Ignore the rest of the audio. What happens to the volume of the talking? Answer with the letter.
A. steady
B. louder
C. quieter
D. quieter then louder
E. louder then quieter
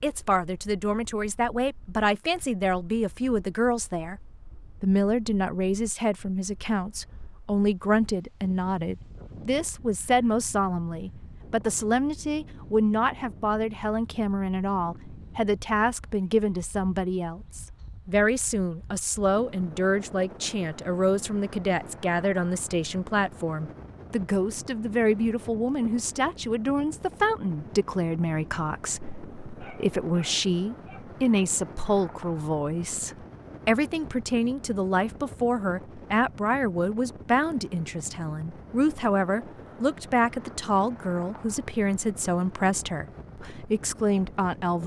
A.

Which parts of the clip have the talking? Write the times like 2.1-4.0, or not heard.
0.0-4.2, 4.8-44.8.